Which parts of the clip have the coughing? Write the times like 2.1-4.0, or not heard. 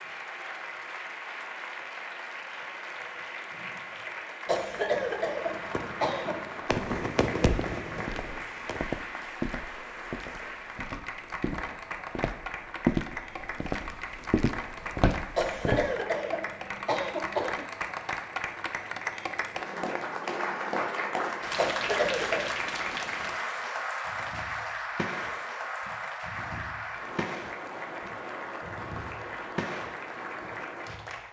4.5-6.5, 15.3-17.7, 21.6-22.5.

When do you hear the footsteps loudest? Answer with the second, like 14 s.
13 s.